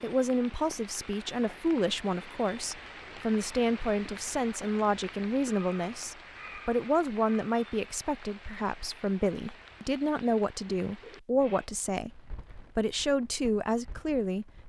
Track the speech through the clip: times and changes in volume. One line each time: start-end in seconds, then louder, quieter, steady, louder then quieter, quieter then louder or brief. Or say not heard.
0.0-14.4 steady.